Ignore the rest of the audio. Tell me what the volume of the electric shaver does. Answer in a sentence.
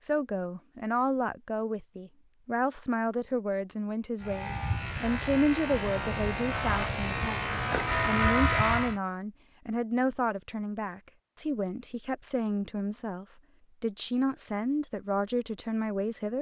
The loudness of the electric shaver goes up.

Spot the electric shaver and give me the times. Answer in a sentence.
The electric shaver can be heard from 4.2 to 9.0 s.